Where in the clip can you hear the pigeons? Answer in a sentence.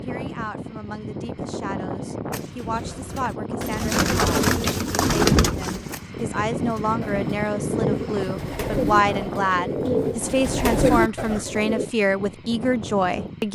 The pigeons can be heard from 2.3 to 11.8 s.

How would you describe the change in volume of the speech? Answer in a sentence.
The loudness of the speech goes up.